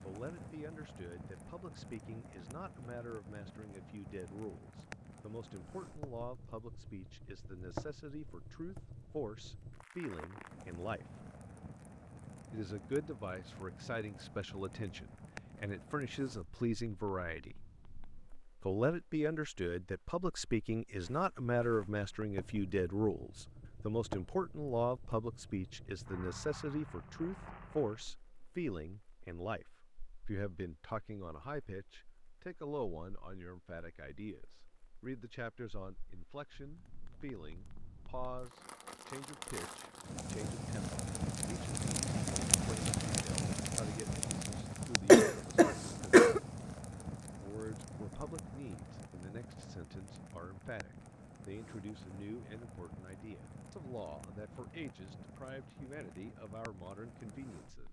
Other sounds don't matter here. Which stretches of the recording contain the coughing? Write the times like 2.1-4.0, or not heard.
45.0-46.4.